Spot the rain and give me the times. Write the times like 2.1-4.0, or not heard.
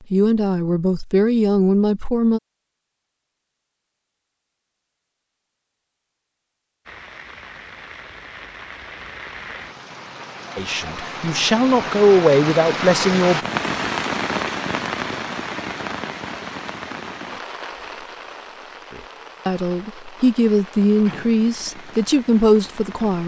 6.8-23.2.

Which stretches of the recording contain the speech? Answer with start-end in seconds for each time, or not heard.
0.1-2.4, 10.6-13.4, 18.9-23.2.